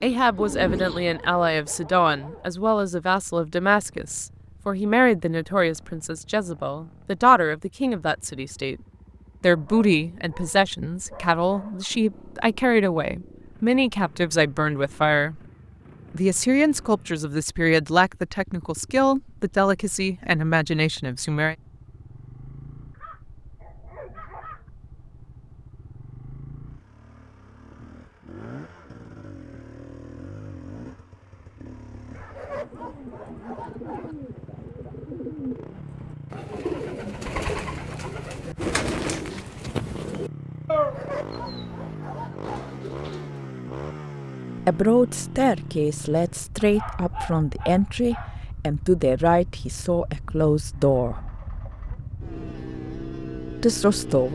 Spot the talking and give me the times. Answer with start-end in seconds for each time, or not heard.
0.0-8.8, 9.4-15.4, 16.1-21.6, 44.6-51.2, 53.6-54.3.